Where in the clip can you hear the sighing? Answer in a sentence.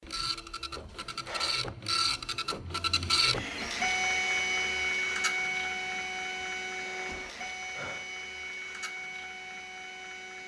You can hear the sighing from 0.8 to 1.6 s and from 6.4 to 8.1 s.